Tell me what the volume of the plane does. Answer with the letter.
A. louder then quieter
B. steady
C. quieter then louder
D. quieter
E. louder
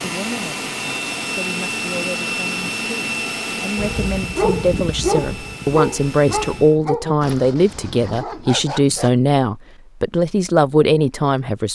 D.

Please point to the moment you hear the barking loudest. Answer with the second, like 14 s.
5 s.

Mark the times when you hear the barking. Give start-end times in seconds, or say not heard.
3.8-9.2.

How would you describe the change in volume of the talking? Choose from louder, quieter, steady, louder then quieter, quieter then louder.
louder.